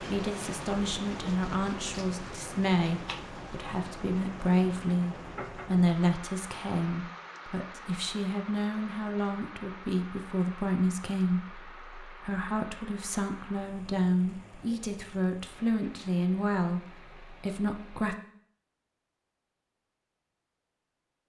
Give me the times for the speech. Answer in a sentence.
You can hear the speech from 0.0 to 18.1 s.